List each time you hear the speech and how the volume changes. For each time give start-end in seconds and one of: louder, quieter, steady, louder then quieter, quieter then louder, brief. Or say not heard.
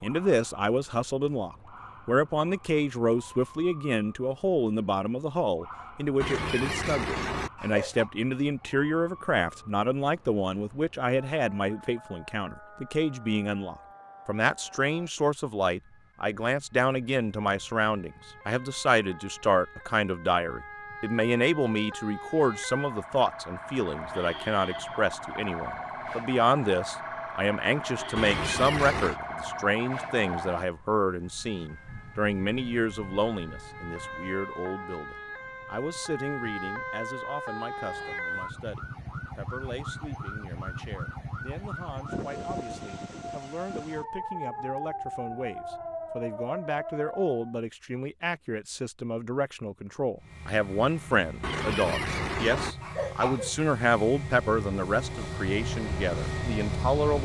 0.0-57.2 quieter then louder.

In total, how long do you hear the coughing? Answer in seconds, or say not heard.
5 s.